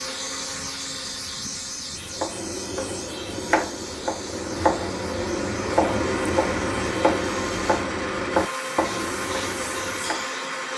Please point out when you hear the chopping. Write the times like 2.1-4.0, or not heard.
1.9-10.2.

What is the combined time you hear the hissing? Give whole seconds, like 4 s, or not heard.
11 s.